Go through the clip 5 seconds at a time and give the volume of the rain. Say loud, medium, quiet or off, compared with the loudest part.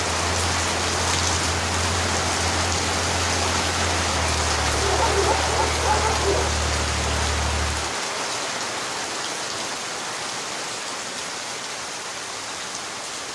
loud, loud, medium.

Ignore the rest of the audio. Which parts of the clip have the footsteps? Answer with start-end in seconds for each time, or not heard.
not heard.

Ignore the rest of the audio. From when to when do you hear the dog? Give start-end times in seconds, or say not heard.
4.7-6.5.